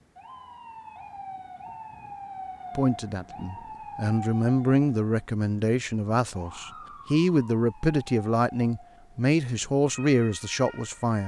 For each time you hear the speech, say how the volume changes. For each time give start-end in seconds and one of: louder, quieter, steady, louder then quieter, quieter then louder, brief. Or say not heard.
2.8-11.2 steady.